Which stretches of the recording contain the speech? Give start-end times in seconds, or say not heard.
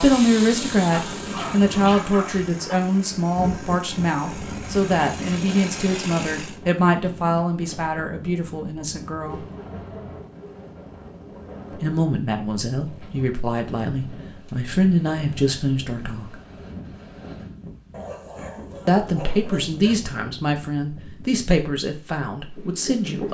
0.0-9.4, 11.7-16.4, 18.9-23.2.